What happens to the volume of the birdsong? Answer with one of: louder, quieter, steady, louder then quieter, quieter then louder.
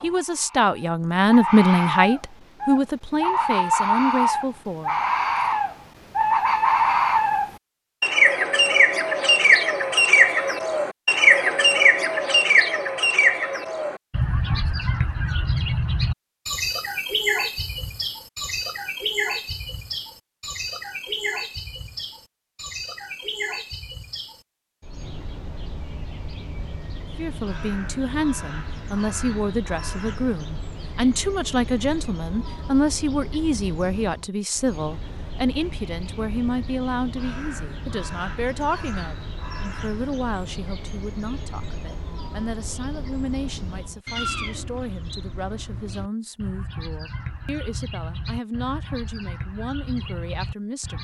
quieter.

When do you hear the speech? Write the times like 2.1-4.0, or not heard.
0.0-5.0, 27.1-50.9.